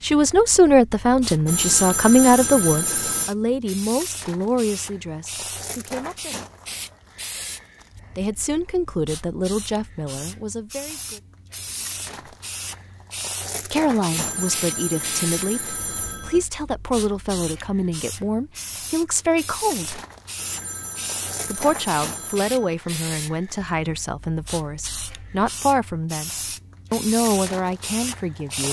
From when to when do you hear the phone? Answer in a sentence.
You can hear the phone from 1.4 to 3.3 s, from 14.1 to 16.4 s and from 20.4 to 22.8 s.